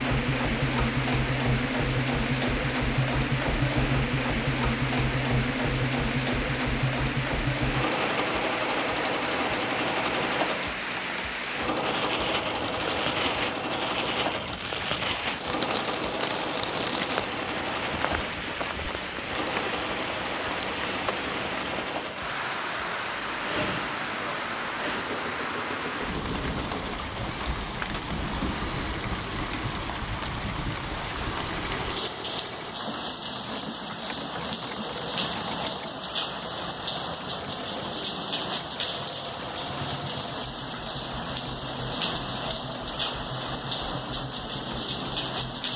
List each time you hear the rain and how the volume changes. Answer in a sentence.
The rain can be heard from 0.0 to 45.7 s, at a steady volume.